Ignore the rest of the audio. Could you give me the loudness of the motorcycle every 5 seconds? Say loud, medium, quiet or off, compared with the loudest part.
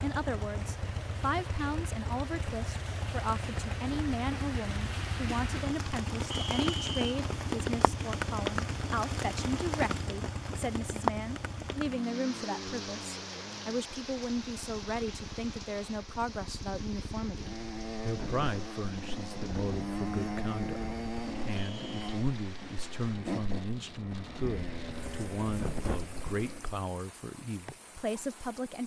loud, loud, medium, loud, loud, loud.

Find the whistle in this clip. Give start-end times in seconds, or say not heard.
6.3-7.0, 21.6-22.2.